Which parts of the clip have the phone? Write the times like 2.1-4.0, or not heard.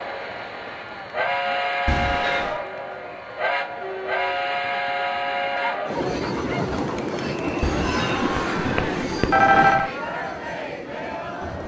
1.9-2.6, 7.6-9.9.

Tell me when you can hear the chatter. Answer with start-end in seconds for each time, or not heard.
0.0-11.6.